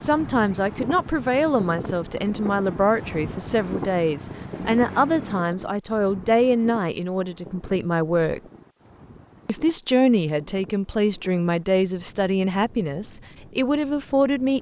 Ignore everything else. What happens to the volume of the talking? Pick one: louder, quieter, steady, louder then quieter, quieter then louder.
steady.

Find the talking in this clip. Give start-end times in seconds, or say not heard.
0.0-8.4, 9.4-14.5.